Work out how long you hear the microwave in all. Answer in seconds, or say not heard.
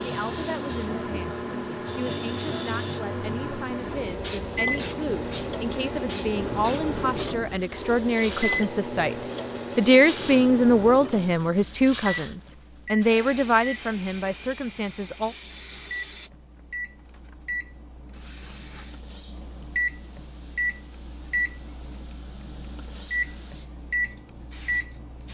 25 s.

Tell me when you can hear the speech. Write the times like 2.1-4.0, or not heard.
0.0-15.3.